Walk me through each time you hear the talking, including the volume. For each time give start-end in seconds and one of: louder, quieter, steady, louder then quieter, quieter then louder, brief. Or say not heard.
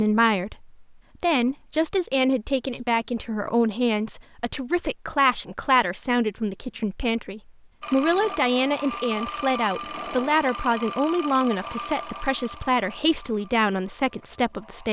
0.0-14.8 steady.